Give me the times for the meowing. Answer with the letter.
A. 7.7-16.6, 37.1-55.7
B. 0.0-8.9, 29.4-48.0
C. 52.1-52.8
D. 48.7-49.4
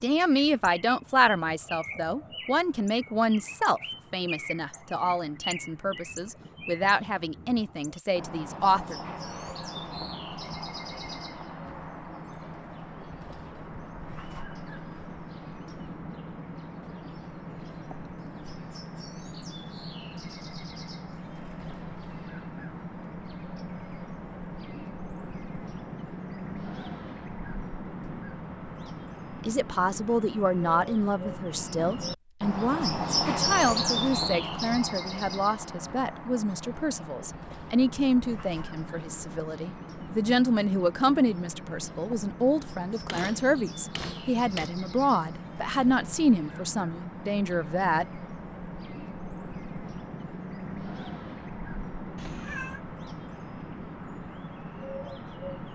C.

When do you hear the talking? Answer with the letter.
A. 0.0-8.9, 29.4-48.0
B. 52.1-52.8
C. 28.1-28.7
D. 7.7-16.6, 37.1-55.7
A.